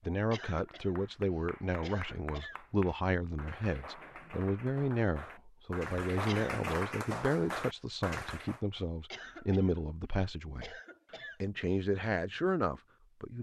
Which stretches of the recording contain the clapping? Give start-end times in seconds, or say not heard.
0.7-8.6.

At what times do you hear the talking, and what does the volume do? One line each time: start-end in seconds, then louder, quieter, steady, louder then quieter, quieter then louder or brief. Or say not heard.
0.1-10.8 steady
11.4-13.3 brief.